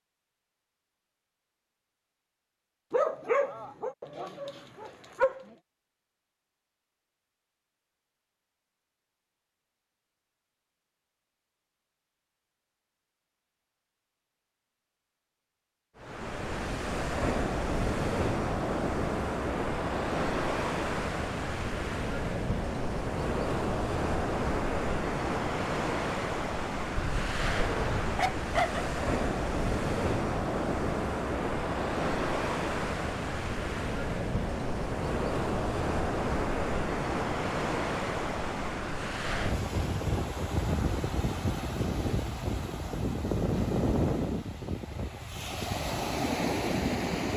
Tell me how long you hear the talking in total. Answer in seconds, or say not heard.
not heard.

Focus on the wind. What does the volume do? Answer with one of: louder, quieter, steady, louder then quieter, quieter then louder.
steady.